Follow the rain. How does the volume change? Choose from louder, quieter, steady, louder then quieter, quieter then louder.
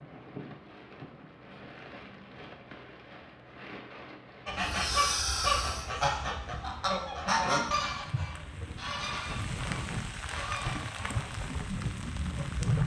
louder.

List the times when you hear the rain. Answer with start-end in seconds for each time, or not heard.
0.0-12.8.